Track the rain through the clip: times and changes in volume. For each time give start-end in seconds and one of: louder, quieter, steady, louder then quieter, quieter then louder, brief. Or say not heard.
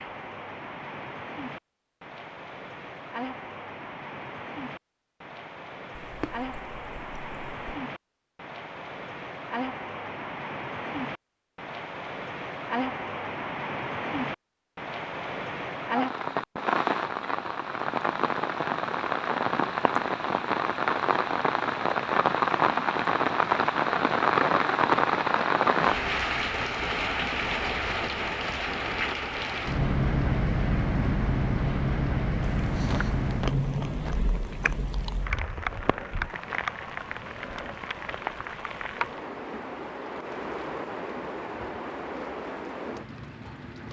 0.0-43.8 louder then quieter.